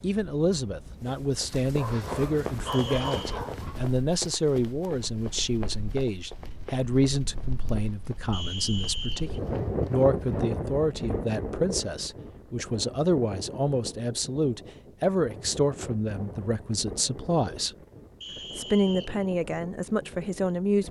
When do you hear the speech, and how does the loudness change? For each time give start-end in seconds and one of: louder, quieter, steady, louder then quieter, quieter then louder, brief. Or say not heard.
0.0-17.7 steady
18.6-20.8 brief.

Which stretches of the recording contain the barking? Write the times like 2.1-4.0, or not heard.
1.6-3.9.